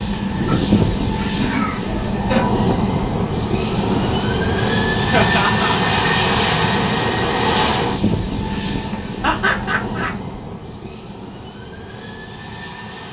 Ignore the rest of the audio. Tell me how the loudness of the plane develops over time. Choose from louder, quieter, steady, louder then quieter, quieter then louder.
quieter.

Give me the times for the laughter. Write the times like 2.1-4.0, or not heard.
0.5-2.6, 5.1-5.8, 9.2-10.2.